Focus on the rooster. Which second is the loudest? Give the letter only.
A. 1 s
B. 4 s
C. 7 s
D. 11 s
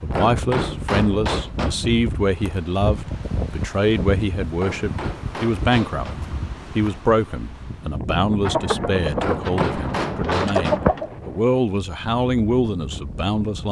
D.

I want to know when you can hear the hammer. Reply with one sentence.
You can hear the hammer from 0.1 to 1.8 s, from 4.6 to 6.2 s and from 9.2 to 10.8 s.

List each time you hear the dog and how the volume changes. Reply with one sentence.
You can't hear the dog here.